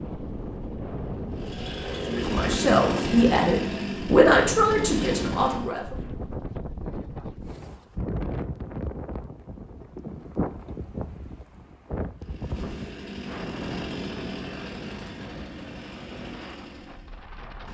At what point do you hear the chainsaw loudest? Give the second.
3 s.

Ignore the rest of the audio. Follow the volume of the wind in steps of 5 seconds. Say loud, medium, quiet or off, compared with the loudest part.
loud, loud, loud, medium.